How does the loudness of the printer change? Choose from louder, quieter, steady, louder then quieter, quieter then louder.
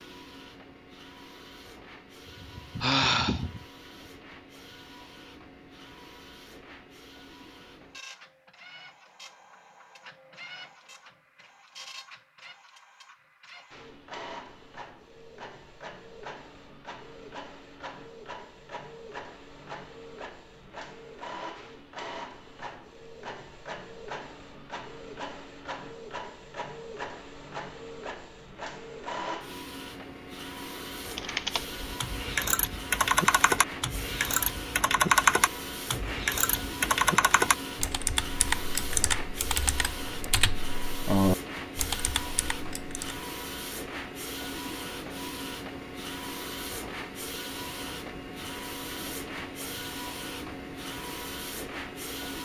louder.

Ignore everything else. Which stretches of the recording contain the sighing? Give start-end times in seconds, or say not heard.
2.4-3.6.